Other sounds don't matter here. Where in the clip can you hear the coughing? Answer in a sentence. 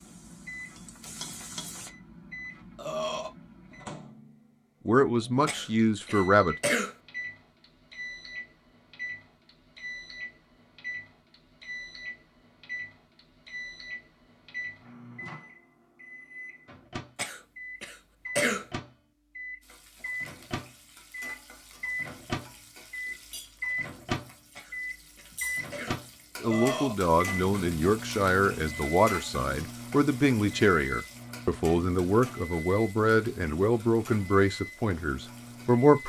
You can hear the coughing from 5.5 to 7.0 s, from 17.1 to 18.6 s and from 24.6 to 26.0 s.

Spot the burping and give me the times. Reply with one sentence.
You can hear the burping from 2.8 to 3.3 s and from 26.4 to 26.9 s.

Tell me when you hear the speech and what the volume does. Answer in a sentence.
You can hear the speech briefly from 4.8 to 6.5 s; and from 26.4 to 36.0 s, at a steady volume.